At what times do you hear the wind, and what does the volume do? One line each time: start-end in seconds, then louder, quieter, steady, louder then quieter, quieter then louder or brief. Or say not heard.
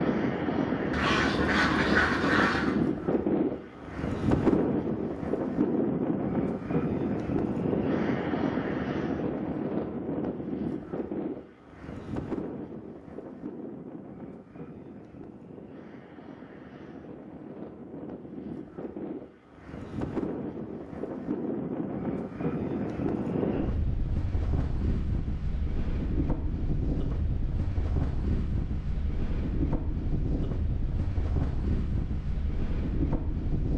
0.0-33.7 quieter then louder.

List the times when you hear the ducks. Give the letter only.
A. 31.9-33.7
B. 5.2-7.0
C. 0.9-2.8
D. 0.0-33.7
C.